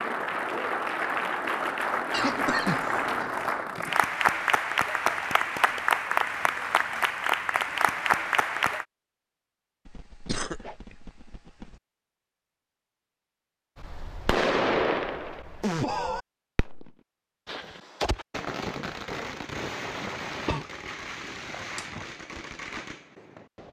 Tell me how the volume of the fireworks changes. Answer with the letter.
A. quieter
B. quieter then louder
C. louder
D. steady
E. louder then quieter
A.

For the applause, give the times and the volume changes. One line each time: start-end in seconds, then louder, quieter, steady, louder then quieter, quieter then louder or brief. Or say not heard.
0.0-8.8 steady.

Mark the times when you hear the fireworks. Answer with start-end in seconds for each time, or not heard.
13.8-23.6.